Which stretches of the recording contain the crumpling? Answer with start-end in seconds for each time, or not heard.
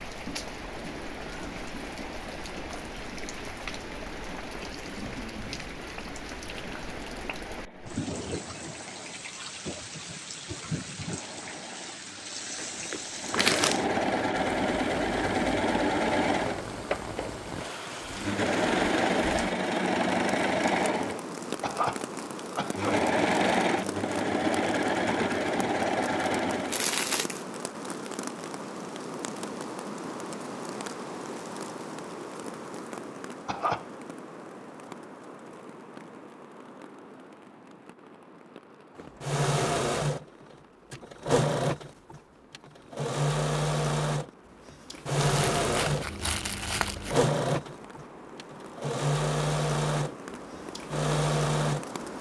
12.6-13.8, 26.7-27.4, 45.1-47.3.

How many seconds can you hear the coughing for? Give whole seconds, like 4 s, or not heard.
2 s.